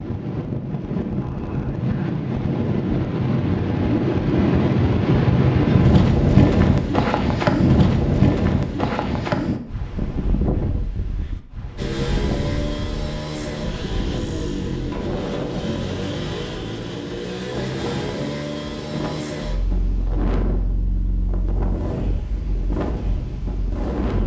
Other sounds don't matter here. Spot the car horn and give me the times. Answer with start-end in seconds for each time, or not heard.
not heard.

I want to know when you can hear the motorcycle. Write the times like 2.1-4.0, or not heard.
11.8-24.2.